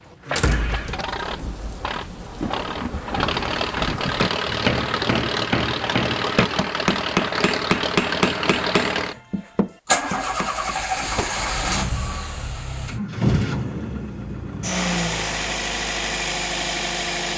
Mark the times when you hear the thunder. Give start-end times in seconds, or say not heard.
0.6-4.3.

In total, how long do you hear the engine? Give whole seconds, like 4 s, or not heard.
17 s.